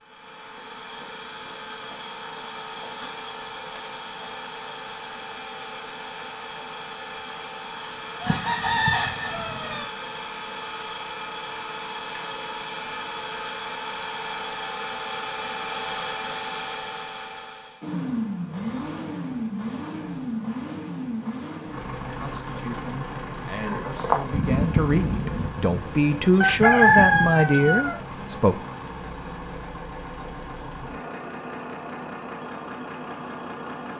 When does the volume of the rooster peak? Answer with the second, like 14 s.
27 s.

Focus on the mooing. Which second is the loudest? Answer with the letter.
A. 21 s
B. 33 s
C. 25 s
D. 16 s
C.